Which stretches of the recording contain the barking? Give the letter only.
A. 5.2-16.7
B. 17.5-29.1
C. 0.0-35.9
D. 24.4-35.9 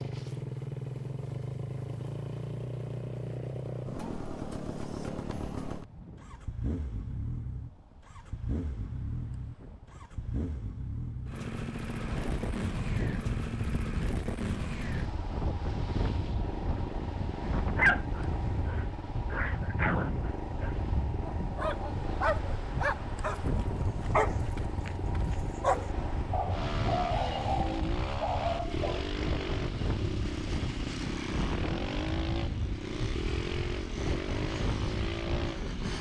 B.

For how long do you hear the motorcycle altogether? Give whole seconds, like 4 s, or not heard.
36 s.